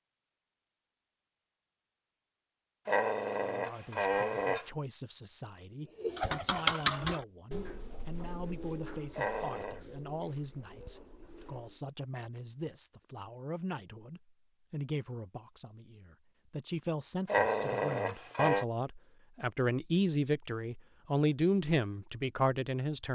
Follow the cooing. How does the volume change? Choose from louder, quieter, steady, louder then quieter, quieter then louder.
quieter.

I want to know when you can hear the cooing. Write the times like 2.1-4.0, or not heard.
6.0-11.8.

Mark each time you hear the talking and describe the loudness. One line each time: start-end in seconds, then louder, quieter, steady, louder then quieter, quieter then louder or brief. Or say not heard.
3.4-23.1 louder.